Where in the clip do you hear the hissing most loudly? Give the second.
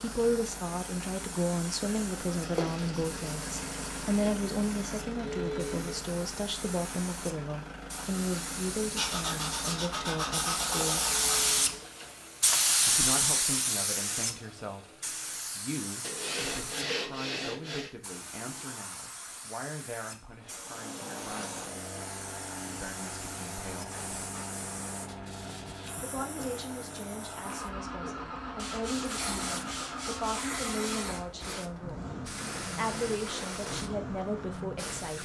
13 s.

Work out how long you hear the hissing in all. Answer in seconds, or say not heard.
35 s.